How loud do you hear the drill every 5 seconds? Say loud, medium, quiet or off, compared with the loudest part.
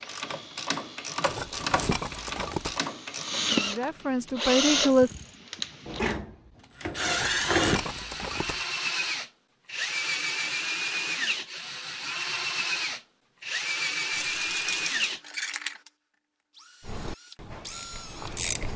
loud, loud, loud, medium.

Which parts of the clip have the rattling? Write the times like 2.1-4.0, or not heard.
1.2-2.8, 7.0-8.7, 14.2-15.0.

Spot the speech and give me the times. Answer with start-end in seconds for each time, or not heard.
3.5-5.1.